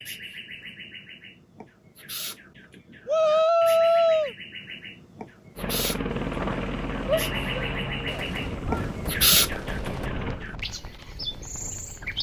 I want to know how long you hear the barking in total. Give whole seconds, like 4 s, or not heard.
not heard.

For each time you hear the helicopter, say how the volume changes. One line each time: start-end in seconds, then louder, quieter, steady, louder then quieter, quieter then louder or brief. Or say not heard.
5.5-10.4 quieter.